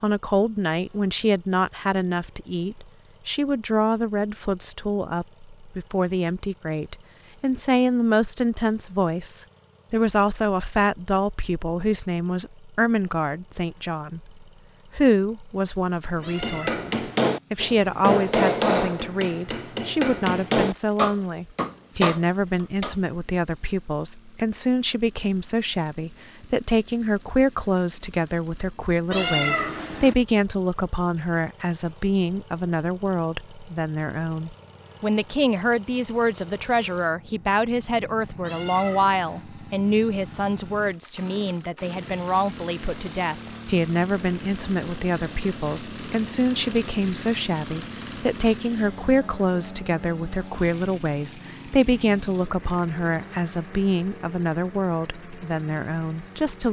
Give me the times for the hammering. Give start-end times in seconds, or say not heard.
16.2-22.9.